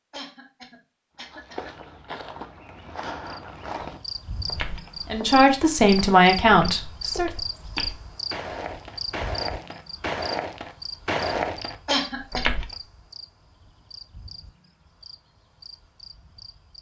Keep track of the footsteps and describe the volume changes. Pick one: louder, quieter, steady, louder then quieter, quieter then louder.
louder.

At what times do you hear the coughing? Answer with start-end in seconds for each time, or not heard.
0.1-1.7, 11.8-12.5.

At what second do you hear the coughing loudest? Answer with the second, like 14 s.
12 s.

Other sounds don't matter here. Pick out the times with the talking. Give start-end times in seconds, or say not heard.
5.1-7.3.